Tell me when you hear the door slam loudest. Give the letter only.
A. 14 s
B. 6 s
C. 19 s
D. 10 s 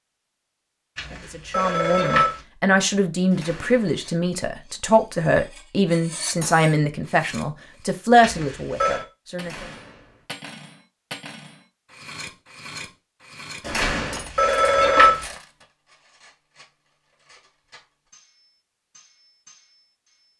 A.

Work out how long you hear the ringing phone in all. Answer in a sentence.
You can hear the ringing phone for 4 seconds altogether.